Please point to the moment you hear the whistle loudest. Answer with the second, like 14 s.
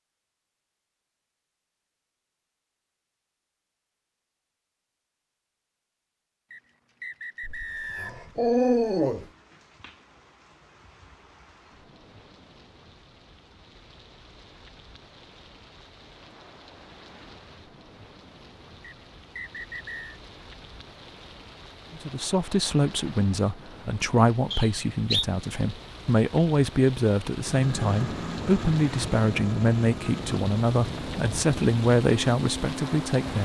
25 s.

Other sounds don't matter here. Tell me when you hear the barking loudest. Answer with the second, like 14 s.
9 s.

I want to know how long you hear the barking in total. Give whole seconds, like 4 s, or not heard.
2 s.